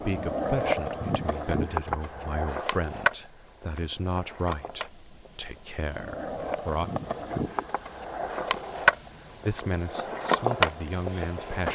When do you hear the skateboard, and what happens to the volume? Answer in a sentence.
You can hear the skateboard from 0.0 to 11.7 s, getting quieter then louder.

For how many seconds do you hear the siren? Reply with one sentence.
The siren can't be heard in this clip.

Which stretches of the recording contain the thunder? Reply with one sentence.
You can't hear the thunder here.